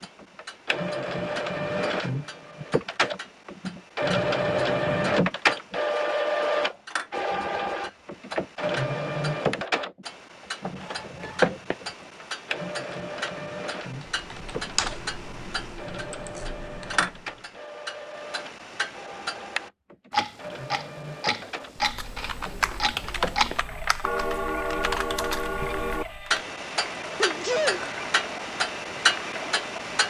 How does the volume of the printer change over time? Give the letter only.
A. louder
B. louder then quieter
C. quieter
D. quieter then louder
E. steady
C.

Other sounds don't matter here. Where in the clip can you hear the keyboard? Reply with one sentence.
You can hear the keyboard from 13.8 to 17.5 s and from 21.8 to 26.4 s.